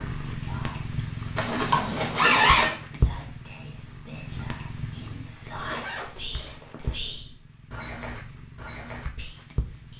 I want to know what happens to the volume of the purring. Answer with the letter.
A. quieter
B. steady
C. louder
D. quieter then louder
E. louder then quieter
A.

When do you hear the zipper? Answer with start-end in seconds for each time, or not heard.
1.4-2.8, 5.5-7.0.